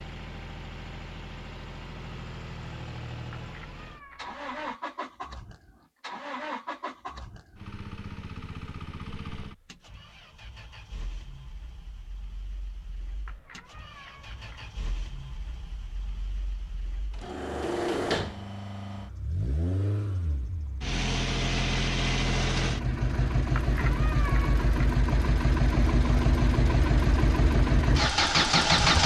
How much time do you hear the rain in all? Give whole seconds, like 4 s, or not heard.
not heard.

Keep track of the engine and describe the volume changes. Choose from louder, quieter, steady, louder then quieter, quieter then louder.
quieter then louder.